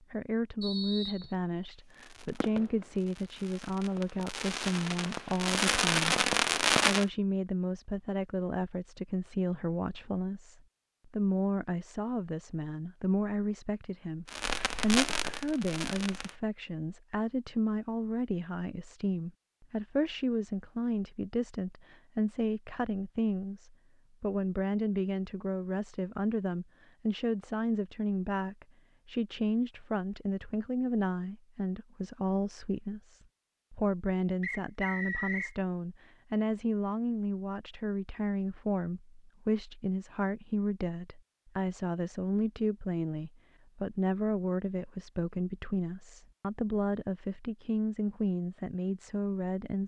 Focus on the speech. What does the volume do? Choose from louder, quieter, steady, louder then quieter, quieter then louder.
steady.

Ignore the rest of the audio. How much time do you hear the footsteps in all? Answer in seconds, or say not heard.
not heard.